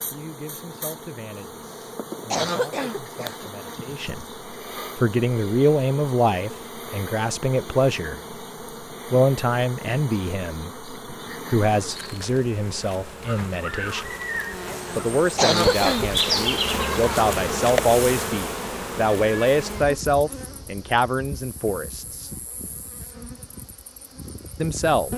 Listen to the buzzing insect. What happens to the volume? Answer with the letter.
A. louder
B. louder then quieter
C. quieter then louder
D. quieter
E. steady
B.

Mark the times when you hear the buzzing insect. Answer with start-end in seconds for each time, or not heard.
0.0-25.1.